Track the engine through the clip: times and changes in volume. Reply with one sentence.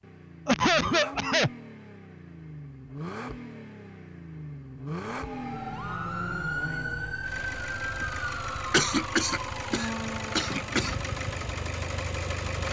The engine can be heard from 0.0 to 12.6 s, getting louder.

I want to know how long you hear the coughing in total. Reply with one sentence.
The coughing can be heard for 3 seconds in total.